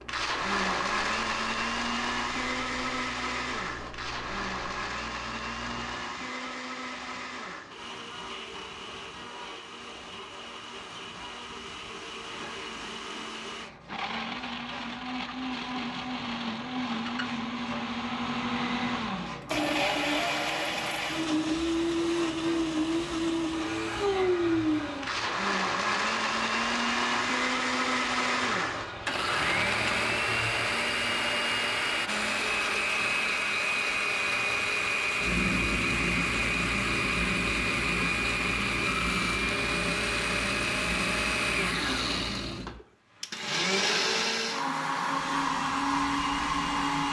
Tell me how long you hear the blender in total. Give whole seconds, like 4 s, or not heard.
47 s.